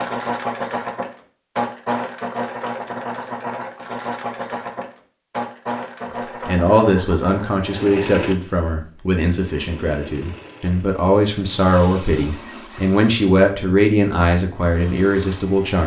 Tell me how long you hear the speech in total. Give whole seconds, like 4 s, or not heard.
9 s.